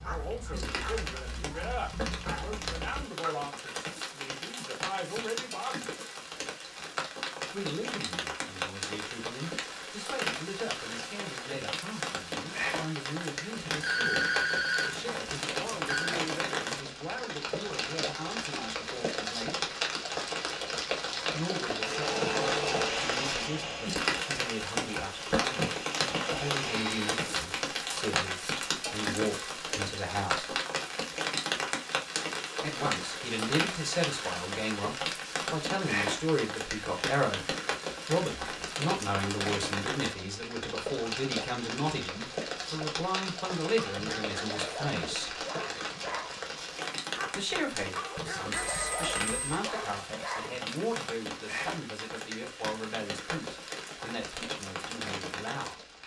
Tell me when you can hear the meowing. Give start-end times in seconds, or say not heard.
not heard.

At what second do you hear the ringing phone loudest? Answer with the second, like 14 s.
14 s.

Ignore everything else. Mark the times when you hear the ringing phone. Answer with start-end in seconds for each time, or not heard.
13.6-16.1, 48.5-49.6.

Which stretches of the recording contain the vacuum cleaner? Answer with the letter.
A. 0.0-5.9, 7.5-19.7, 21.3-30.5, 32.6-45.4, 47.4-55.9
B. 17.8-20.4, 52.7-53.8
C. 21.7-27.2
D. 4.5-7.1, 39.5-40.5
C.